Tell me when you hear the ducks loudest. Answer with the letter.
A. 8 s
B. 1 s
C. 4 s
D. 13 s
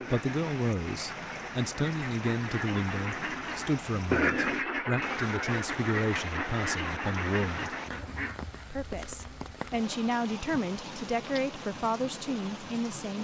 C.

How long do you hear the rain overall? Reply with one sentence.
The rain can be heard for 13 seconds in total.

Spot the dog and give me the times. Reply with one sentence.
The dog can't be heard in this clip.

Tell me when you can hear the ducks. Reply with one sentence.
You can hear the ducks from 0.0 to 8.4 s.